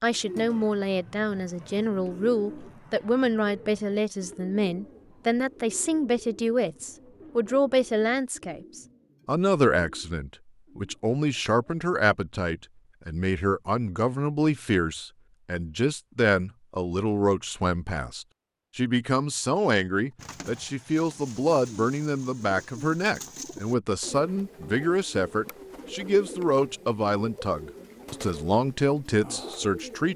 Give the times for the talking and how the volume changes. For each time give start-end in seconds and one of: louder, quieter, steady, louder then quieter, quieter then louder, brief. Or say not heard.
0.0-30.1 steady.